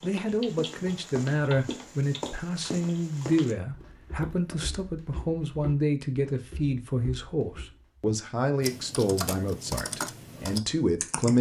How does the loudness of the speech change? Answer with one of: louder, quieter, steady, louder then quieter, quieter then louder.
steady.